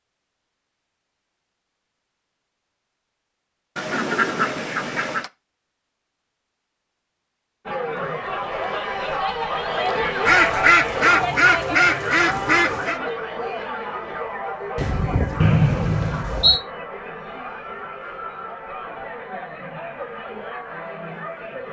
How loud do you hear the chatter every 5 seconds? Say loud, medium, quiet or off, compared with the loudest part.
off, loud, loud, medium, medium.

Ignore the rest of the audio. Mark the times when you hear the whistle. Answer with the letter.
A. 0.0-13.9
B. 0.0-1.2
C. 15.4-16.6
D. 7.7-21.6
C.